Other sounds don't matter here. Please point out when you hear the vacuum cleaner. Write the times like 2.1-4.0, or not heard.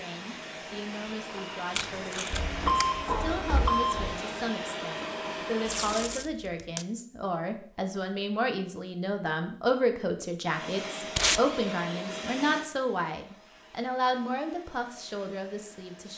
0.0-6.2, 10.4-16.1.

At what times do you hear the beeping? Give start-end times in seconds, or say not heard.
2.3-4.2.